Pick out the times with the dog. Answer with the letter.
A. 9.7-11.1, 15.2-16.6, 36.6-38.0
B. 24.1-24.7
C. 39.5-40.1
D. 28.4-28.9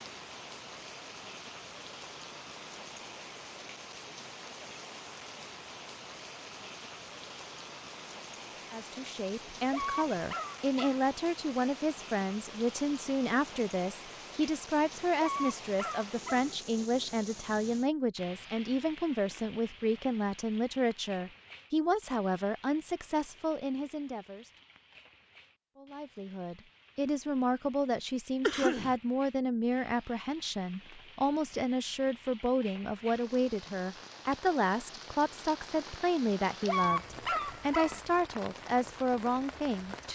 A.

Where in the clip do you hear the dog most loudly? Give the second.
37 s.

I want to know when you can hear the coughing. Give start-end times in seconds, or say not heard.
28.4-28.9.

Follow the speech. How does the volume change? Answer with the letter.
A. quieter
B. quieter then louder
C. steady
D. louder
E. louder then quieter
C.